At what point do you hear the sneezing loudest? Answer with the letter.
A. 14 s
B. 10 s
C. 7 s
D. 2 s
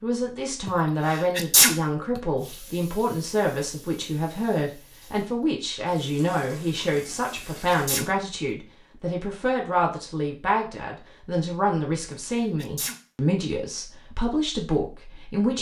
D.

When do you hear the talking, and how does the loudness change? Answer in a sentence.
You can hear the talking from 0.0 to 15.5 s, at a steady volume.